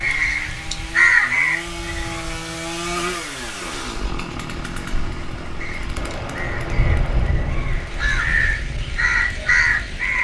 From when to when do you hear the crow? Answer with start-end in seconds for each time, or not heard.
0.0-2.3, 5.6-10.1.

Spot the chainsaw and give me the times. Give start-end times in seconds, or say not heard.
0.0-10.1.